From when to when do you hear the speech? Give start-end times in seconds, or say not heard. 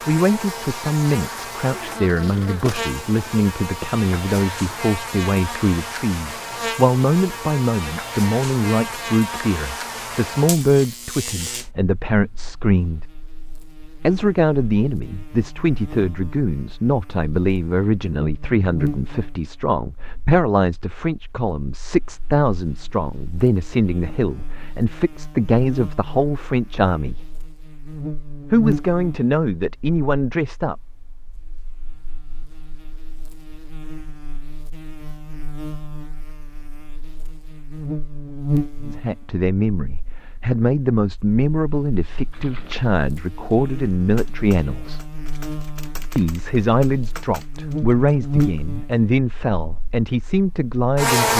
0.1-13.1, 14.0-27.2, 28.5-30.8, 38.8-45.0, 46.1-51.3.